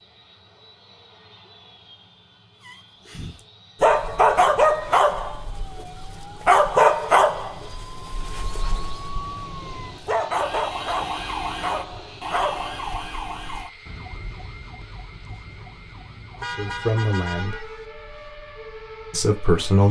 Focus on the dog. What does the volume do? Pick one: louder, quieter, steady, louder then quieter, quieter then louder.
quieter.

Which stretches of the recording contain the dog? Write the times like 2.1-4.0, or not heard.
2.6-13.7.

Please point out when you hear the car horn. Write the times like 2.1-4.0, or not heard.
16.4-17.9.